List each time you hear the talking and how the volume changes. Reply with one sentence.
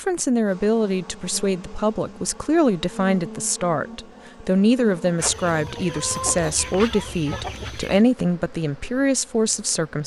The talking can be heard from 0.0 to 10.0 s, at a steady volume.